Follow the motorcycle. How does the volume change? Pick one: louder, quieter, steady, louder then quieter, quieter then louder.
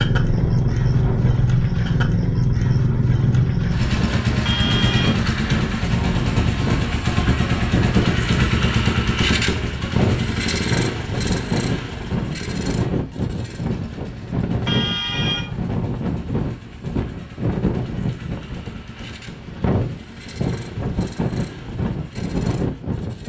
quieter.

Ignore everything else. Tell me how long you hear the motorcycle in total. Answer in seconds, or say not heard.
23 s.